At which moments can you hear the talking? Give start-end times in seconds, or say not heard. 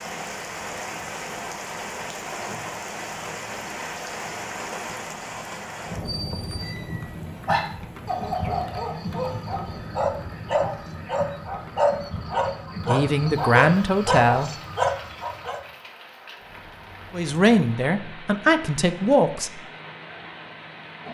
12.8-14.5, 17.1-19.5.